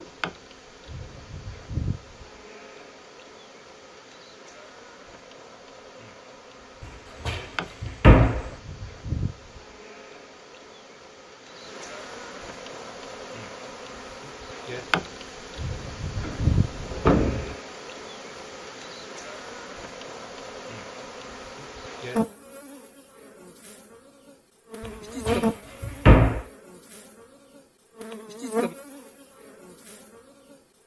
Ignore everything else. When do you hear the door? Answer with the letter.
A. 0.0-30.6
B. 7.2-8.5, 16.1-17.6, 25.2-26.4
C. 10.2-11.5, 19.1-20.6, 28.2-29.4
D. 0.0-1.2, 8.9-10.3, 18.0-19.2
B.